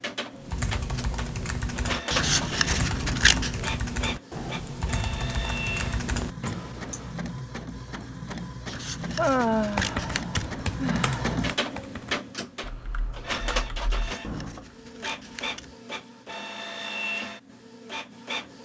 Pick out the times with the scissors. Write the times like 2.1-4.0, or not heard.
2.1-3.6, 8.7-10.6, 13.9-15.8.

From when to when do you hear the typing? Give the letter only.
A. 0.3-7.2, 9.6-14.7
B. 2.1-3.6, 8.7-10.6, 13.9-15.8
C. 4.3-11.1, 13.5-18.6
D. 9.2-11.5
A.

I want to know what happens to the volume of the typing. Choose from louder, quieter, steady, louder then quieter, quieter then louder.
quieter.